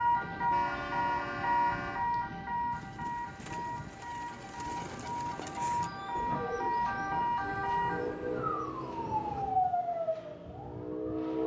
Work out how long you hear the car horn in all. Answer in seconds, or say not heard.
3 s.